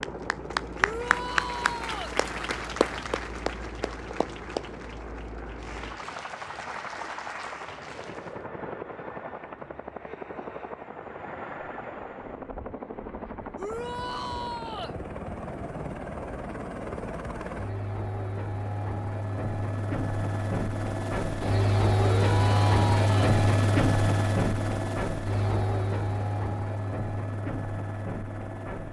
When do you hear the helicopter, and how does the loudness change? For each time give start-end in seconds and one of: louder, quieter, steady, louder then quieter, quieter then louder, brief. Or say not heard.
0.0-28.8 louder.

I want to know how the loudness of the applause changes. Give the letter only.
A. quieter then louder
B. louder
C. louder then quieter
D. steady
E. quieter
E.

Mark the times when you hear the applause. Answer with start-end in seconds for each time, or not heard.
0.0-8.4.